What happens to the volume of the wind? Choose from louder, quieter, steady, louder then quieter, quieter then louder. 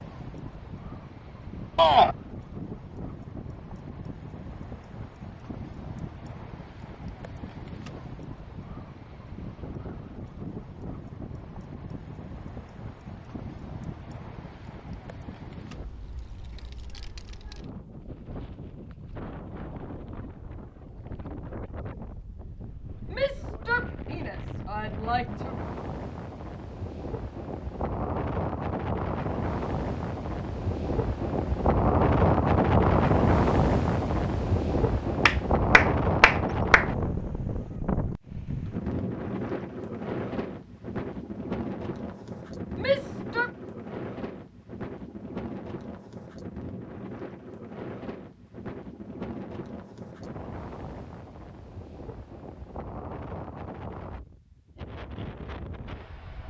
louder then quieter.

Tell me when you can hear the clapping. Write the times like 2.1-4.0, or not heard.
35.2-36.9.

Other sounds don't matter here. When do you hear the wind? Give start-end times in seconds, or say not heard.
0.0-56.4.